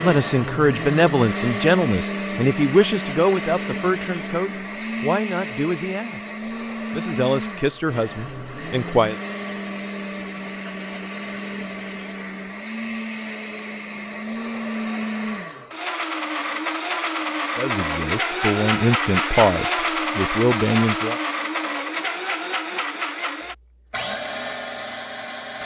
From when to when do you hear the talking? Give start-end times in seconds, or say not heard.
0.0-9.2, 17.6-21.2.